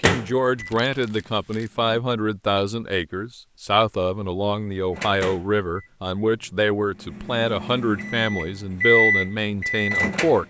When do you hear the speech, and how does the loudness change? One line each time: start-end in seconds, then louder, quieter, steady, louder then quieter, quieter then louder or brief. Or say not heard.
0.0-10.4 steady.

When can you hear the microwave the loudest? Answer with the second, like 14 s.
9 s.